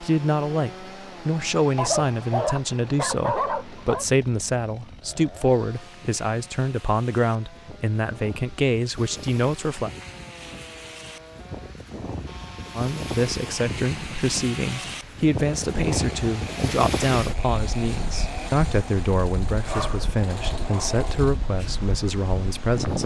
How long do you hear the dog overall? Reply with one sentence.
You can hear the dog for 4 seconds altogether.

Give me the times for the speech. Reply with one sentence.
The speech can be heard from 0.0 to 9.9 s and from 12.8 to 23.0 s.